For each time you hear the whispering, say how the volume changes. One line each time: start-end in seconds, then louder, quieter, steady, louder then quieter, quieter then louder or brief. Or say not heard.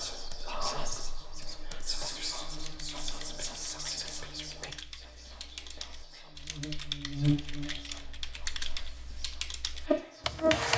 0.0-10.4 quieter.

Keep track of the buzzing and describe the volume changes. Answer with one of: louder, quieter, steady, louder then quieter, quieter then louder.
louder.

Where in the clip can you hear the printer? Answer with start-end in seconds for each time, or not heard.
not heard.